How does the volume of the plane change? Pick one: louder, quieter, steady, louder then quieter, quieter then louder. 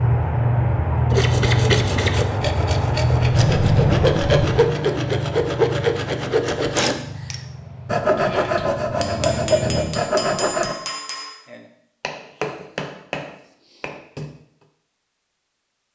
quieter.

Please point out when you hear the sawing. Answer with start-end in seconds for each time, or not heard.
1.1-10.8.